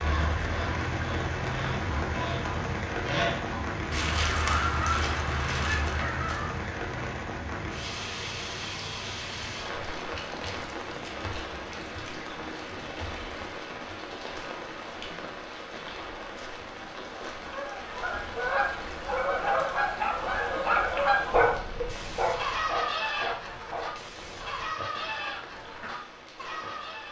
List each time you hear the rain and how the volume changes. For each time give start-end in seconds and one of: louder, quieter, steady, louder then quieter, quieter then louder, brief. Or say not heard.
0.0-27.0 quieter.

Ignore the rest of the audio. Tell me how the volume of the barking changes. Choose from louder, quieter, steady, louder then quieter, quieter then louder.
quieter.